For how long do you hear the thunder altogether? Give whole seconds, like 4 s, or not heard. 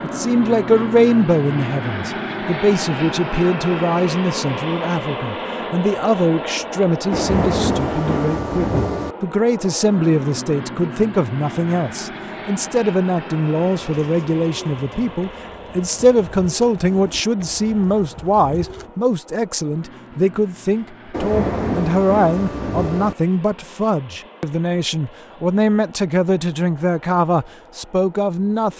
4 s.